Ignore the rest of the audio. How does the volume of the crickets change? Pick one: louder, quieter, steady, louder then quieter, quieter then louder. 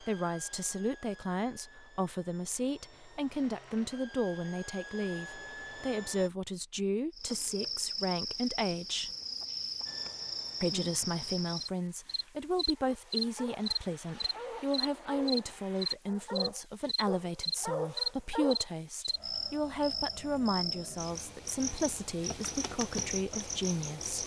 steady.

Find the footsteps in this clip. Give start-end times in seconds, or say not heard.
not heard.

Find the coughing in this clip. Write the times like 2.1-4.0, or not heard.
not heard.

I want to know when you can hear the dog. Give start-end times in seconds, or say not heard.
12.8-18.6.